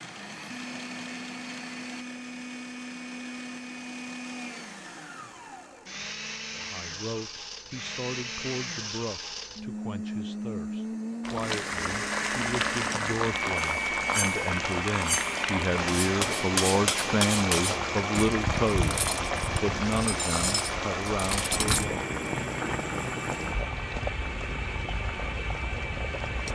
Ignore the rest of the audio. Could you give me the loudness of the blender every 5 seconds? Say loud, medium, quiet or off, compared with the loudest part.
medium, medium, loud, loud, medium, medium.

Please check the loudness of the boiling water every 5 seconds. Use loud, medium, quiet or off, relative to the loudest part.
off, off, loud, loud, loud, medium.